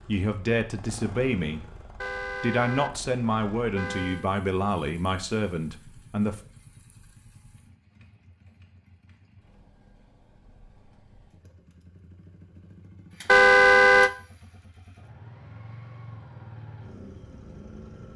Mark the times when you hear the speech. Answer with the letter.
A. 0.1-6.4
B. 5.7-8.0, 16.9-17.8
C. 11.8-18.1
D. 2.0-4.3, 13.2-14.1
A.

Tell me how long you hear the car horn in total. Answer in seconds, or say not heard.
3 s.